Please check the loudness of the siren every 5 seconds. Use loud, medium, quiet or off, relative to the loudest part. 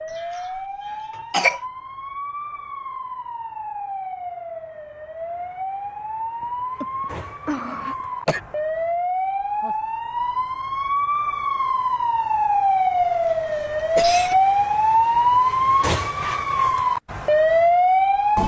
quiet, medium, loud, loud.